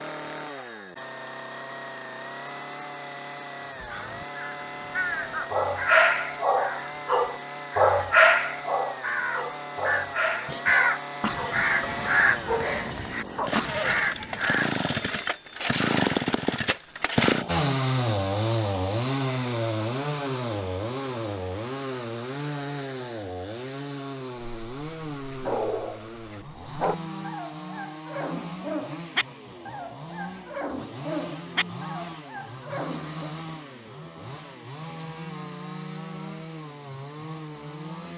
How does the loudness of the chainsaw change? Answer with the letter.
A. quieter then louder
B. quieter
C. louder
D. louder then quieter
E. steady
D.